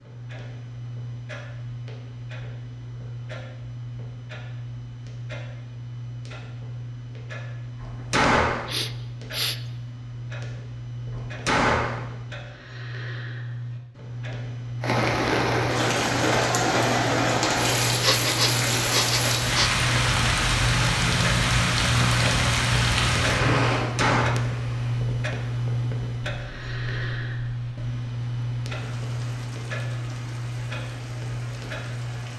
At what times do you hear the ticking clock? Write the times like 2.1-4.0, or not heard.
0.0-32.3.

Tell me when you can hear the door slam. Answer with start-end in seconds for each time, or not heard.
7.8-8.7, 11.1-12.0, 23.8-24.3.